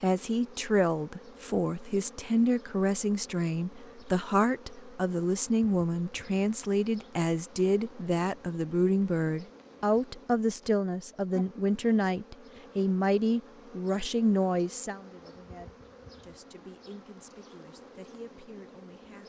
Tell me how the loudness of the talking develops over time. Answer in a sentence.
The loudness of the talking goes down.